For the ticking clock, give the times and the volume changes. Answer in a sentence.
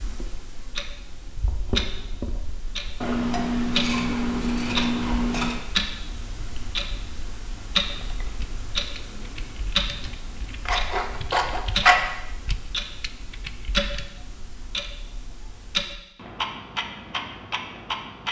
You can hear the ticking clock from 0.0 to 18.2 s, at a steady volume.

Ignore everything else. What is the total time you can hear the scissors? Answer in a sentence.
You can hear the scissors for 4 seconds altogether.